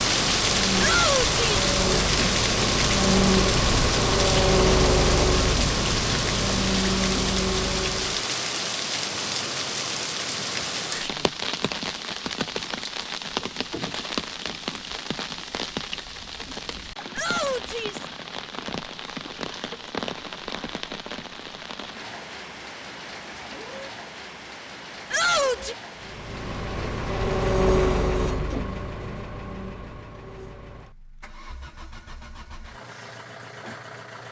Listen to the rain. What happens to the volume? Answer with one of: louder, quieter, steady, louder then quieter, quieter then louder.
quieter.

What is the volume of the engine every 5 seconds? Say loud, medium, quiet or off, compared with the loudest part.
loud, loud, off, off, off, loud, quiet.